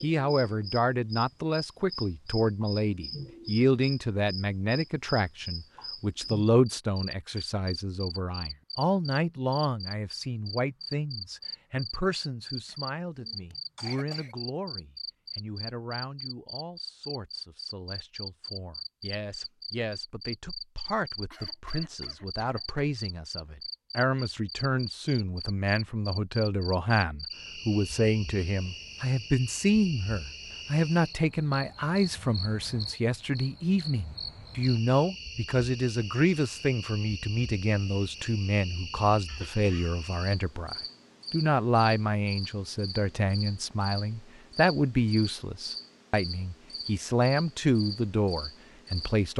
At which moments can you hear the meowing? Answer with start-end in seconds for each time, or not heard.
not heard.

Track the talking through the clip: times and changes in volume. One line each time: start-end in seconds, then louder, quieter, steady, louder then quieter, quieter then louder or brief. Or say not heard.
0.0-49.3 quieter then louder.